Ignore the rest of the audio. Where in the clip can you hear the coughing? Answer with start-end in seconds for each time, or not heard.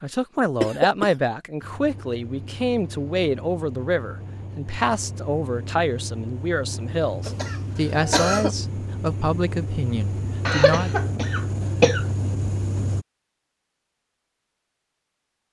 0.6-1.1, 7.2-8.6, 10.4-12.1.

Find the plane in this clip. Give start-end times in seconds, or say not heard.
1.6-13.1.